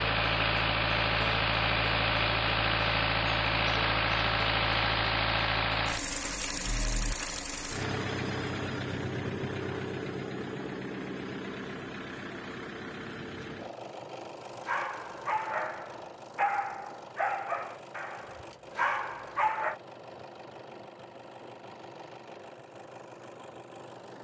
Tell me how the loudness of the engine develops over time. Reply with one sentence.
The volume of the engine goes down.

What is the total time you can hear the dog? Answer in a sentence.
You can hear the dog for 5 seconds altogether.